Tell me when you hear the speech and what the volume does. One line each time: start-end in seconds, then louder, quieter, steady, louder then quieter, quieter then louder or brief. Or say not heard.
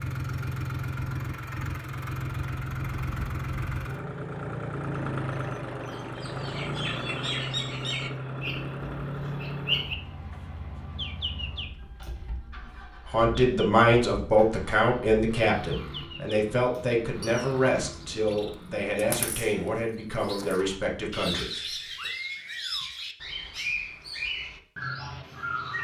13.1-21.6 quieter.